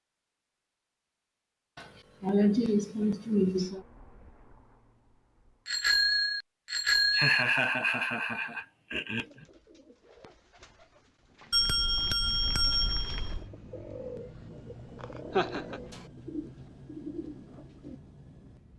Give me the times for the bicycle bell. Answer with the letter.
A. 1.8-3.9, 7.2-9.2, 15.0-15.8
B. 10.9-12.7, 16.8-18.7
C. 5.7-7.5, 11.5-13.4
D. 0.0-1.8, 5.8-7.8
C.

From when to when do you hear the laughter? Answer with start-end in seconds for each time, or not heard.
1.8-3.9, 7.2-9.2, 15.0-15.8.